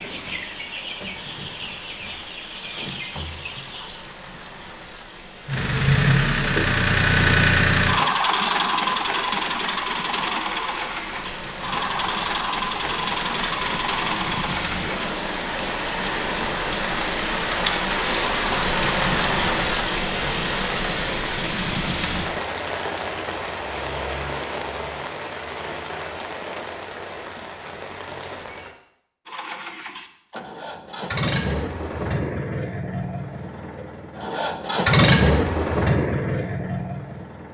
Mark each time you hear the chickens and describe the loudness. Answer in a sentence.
You can hear the chickens from 0.0 to 4.1 s, at a steady volume.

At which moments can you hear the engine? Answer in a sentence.
The engine can be heard from 5.5 to 15.2 s and from 29.2 to 37.4 s.